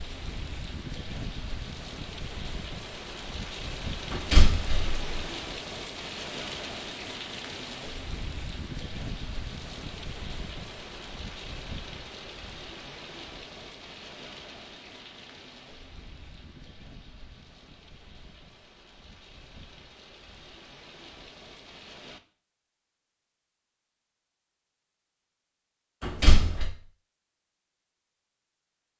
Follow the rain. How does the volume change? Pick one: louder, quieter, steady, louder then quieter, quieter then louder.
quieter.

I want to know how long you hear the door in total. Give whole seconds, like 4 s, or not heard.
2 s.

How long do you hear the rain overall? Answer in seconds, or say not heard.
22 s.